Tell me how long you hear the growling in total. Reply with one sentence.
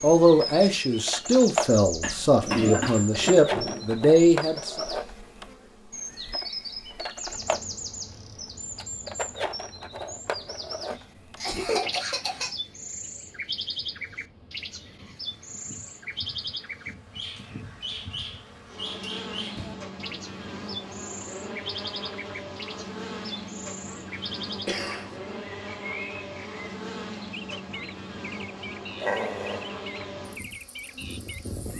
You can hear the growling for 2 seconds altogether.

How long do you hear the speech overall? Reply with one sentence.
The speech can be heard for 5 seconds in total.